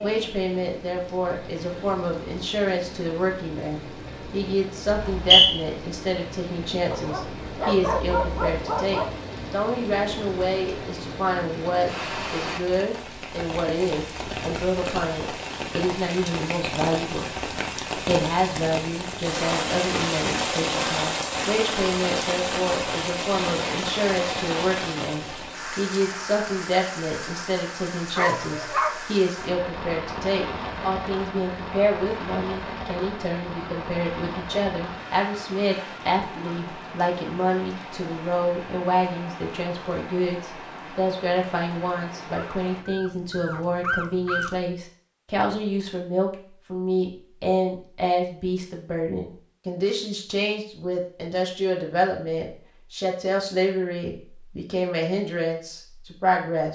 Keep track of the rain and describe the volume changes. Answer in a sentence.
The loudness of the rain goes up, then down.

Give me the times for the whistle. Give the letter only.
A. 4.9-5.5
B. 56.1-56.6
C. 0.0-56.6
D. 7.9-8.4
A.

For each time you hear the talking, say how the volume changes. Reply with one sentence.
You can hear the talking from 0.0 to 56.6 s, at a steady volume.